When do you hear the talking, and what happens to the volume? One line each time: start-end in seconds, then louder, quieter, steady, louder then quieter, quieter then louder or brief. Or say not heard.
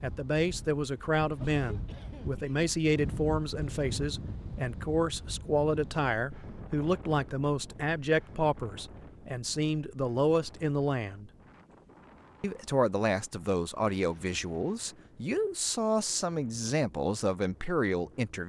0.0-11.3 steady
12.4-18.4 steady.